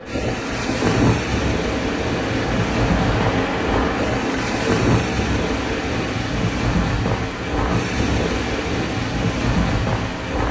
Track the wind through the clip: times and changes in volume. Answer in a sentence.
You can hear the wind from 0.0 to 10.4 s, at a steady volume.